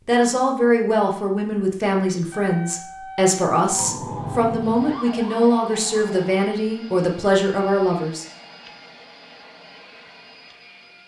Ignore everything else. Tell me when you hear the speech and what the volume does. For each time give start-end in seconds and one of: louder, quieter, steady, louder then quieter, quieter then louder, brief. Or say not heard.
0.1-8.2 steady.